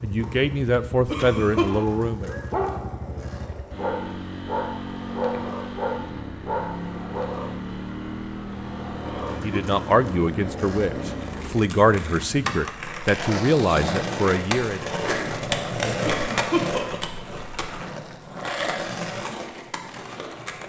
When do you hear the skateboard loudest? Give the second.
16 s.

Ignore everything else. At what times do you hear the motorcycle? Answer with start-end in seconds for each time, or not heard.
0.0-12.6.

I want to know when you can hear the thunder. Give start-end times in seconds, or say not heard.
not heard.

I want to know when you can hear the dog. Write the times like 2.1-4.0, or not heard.
1.7-7.3.